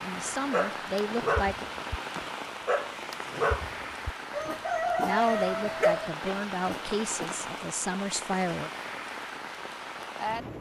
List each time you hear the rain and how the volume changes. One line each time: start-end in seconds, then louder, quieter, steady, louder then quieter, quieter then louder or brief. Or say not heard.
0.0-10.5 steady.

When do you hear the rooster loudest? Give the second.
5 s.